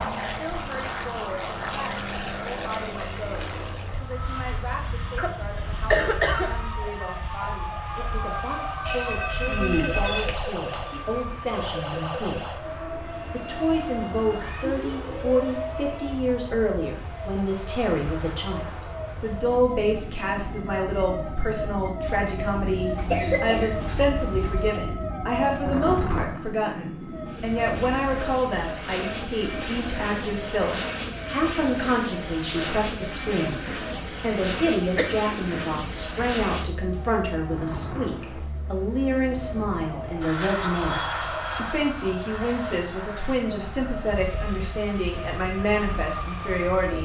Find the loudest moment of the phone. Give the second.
10 s.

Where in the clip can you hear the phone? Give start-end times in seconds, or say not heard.
8.8-11.0.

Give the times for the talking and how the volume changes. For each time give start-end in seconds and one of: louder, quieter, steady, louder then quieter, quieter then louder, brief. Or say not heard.
0.2-47.0 louder.